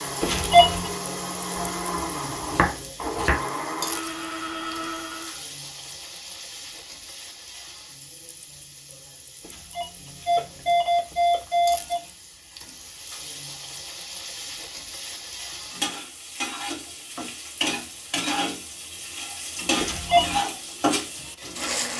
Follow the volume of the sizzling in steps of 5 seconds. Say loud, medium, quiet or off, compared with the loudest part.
medium, quiet, quiet, loud, loud.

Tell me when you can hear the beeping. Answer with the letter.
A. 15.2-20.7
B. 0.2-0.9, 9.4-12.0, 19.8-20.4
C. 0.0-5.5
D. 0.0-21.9
B.